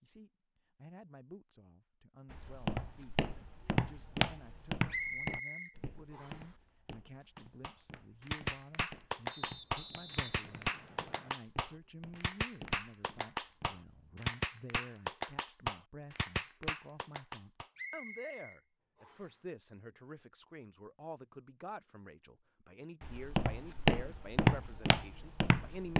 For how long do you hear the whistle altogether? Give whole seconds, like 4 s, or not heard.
5 s.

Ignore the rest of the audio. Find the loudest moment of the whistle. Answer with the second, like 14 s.
5 s.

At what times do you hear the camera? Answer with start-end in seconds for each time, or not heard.
not heard.